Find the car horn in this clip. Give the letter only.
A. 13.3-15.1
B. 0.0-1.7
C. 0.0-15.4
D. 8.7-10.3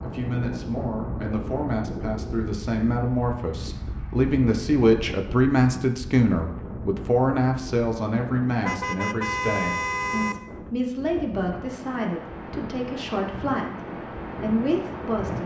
D.